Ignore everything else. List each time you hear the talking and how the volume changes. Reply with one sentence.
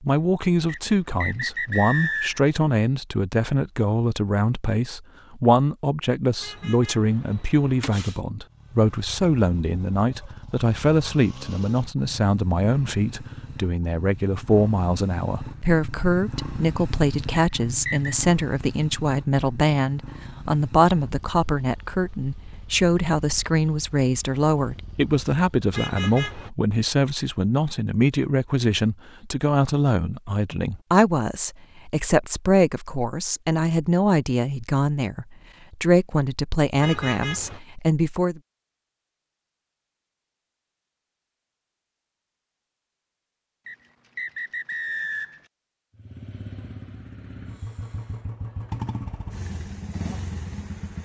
The talking can be heard from 0.0 to 38.4 s, at a steady volume.